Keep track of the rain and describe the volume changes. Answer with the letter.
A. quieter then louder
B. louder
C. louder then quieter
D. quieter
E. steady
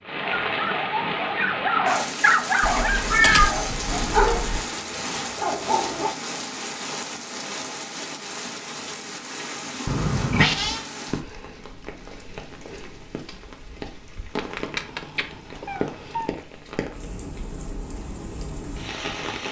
D.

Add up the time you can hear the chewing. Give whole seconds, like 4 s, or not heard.
not heard.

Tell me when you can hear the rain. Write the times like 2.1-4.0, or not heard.
0.0-19.4.